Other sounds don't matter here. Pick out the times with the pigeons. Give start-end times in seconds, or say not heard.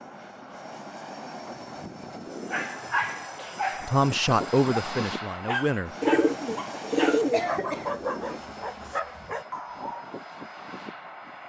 6.0-7.5.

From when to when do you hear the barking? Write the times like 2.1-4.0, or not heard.
2.4-10.1.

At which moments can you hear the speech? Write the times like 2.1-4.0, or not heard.
3.9-6.0.